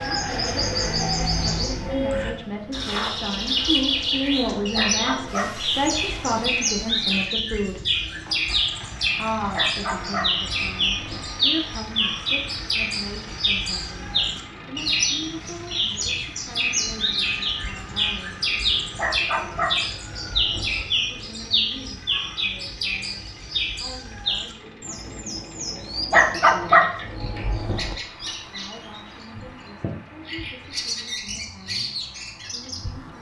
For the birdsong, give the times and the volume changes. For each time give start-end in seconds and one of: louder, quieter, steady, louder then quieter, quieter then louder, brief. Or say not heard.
0.0-33.1 quieter.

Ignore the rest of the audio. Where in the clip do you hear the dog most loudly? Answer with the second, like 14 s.
27 s.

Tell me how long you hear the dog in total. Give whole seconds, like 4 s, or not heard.
7 s.